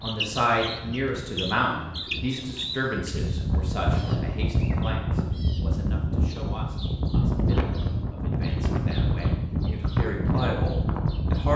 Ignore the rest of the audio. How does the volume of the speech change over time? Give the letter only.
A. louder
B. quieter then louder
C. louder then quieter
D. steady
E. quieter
B.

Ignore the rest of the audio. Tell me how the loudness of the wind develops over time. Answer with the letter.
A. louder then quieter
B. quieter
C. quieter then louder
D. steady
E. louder
E.